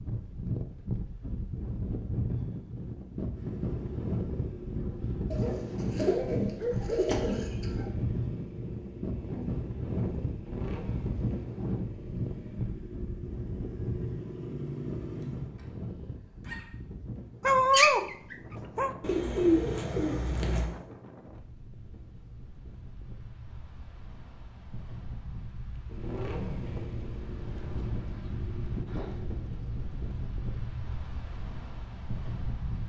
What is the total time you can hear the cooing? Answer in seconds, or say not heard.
4 s.